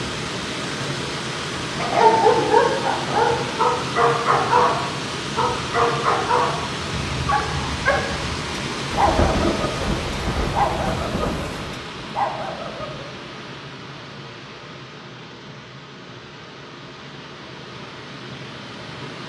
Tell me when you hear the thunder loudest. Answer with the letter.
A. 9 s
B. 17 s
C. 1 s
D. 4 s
A.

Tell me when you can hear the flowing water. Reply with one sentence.
The flowing water can be heard from 0.0 to 19.2 s.